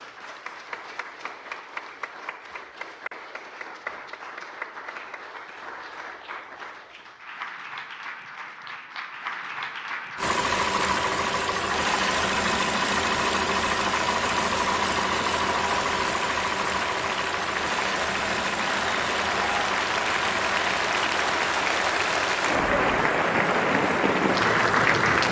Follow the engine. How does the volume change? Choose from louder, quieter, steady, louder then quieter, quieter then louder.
quieter.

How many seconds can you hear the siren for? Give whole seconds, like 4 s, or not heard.
not heard.